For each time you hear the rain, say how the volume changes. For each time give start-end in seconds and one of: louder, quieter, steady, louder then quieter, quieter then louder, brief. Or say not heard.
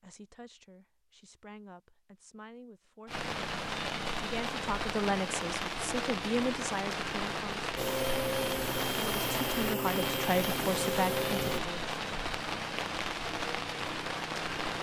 3.0-14.7 steady.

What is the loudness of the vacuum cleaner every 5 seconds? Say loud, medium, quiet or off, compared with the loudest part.
off, loud, loud.